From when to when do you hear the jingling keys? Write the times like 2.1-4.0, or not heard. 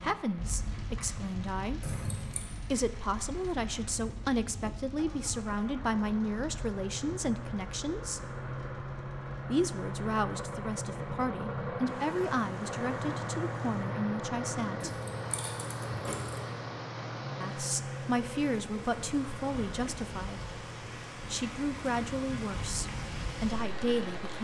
1.8-2.5, 14.8-16.4.